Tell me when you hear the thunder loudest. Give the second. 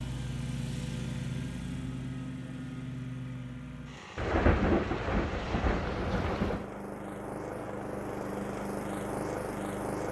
5 s.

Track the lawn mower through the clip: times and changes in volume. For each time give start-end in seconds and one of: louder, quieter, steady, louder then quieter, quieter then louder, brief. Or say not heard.
0.0-10.0 quieter then louder.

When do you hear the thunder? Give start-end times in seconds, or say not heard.
4.2-6.7.